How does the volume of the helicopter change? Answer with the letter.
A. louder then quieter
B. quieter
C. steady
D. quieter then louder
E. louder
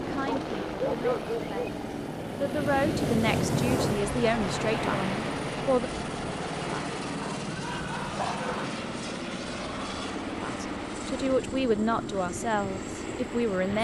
C.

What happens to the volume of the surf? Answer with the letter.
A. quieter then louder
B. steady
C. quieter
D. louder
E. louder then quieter
E.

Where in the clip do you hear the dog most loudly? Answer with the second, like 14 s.
1 s.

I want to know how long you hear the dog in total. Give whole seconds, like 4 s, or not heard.
3 s.